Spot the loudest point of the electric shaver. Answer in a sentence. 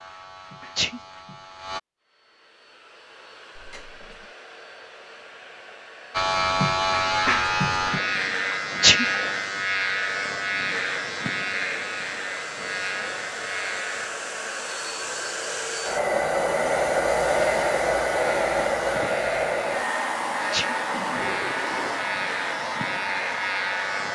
The loudest moment of the electric shaver is at 7 seconds.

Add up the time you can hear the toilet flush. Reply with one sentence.
The toilet flush can be heard for 2 seconds in total.